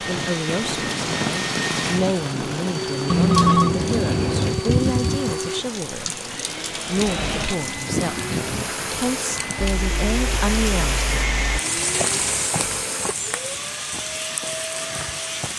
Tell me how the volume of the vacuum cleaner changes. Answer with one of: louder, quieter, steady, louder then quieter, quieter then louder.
steady.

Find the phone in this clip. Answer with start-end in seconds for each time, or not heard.
3.1-4.6, 9.6-11.6.